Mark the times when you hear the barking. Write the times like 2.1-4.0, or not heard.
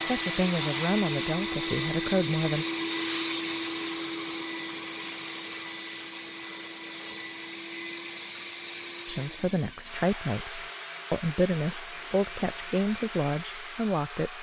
not heard.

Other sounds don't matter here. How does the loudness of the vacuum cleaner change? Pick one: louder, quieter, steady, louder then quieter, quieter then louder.
quieter.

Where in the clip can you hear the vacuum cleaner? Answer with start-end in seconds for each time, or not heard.
0.0-14.3.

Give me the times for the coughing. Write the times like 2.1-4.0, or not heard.
not heard.